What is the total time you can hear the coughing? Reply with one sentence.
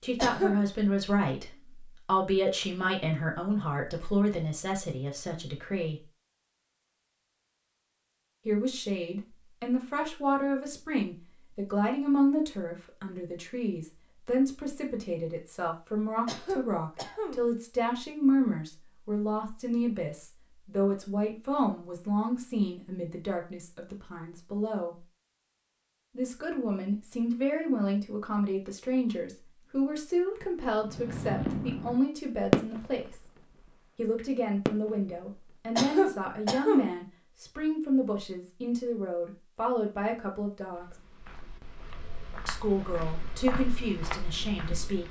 You can hear the coughing for 3 seconds altogether.